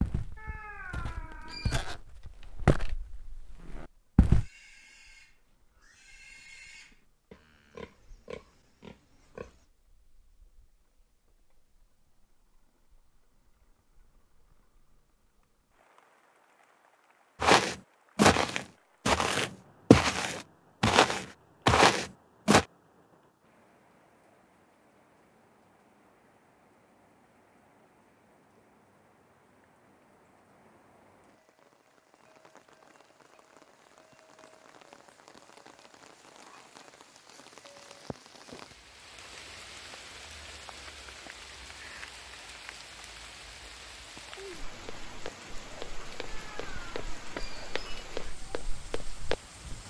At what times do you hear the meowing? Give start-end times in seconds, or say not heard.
0.3-1.9, 46.2-48.0.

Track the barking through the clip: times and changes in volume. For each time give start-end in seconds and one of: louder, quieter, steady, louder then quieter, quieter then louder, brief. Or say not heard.
not heard.